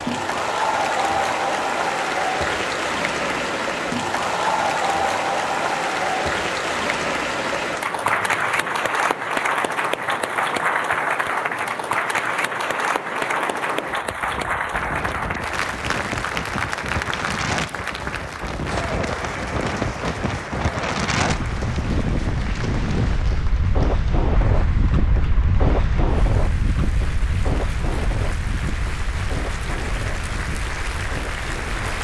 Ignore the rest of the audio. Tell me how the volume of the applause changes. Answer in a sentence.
The loudness of the applause goes down.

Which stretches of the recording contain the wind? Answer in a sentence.
You can hear the wind from 0.0 to 31.9 s.